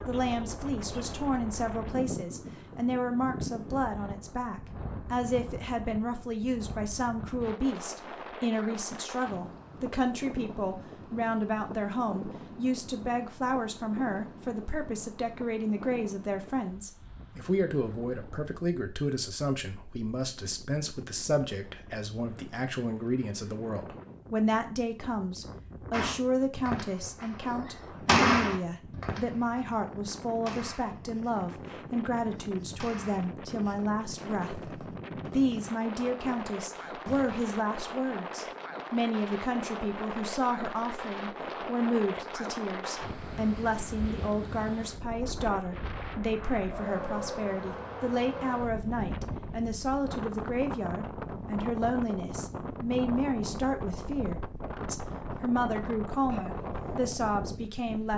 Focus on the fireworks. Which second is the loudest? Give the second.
28 s.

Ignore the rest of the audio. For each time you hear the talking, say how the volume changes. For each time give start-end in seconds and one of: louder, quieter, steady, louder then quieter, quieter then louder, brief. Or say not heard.
0.1-58.1 steady.